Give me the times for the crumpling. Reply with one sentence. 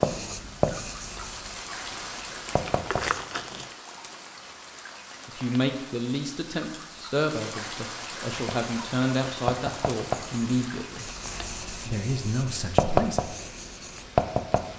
The crumpling can be heard from 2.5 to 3.8 s.